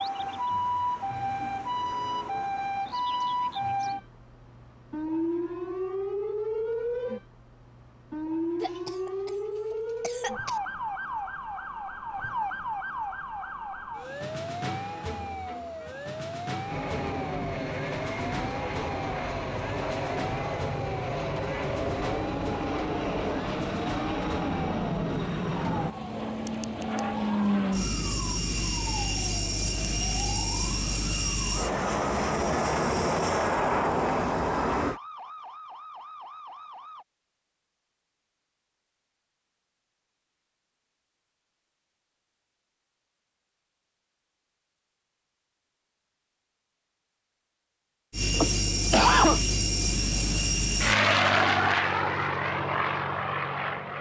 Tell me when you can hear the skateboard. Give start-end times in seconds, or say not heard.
not heard.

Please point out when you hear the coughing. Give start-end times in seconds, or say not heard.
8.6-10.6, 48.3-49.4.